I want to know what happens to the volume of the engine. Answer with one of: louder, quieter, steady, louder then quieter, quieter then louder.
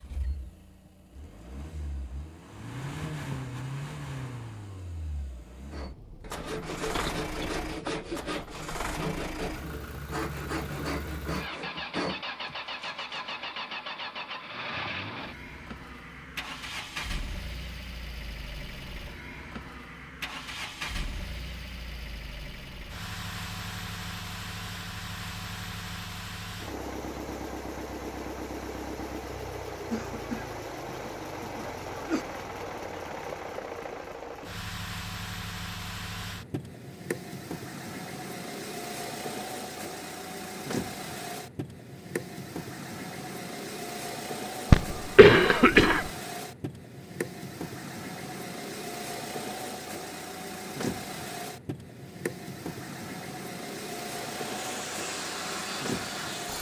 steady.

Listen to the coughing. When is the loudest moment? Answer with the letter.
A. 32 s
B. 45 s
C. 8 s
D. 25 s
B.